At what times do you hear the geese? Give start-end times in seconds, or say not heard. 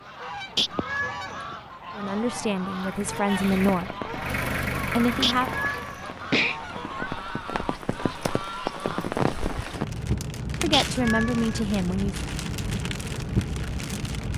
0.0-9.2.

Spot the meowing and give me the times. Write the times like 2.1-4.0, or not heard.
0.6-1.4, 5.2-7.1, 10.7-11.7.